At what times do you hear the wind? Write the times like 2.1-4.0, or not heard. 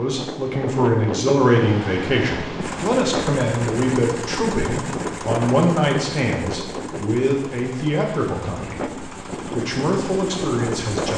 0.0-11.1.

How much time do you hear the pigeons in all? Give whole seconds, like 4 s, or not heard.
not heard.